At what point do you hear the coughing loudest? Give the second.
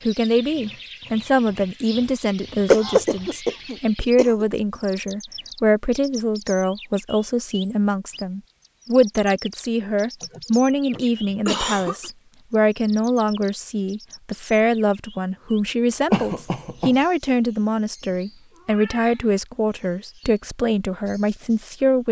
3 s.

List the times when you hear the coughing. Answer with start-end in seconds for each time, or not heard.
2.7-4.5, 10.2-12.1, 16.1-16.9.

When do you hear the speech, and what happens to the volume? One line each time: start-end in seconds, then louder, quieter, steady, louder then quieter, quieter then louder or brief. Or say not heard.
0.1-22.0 steady.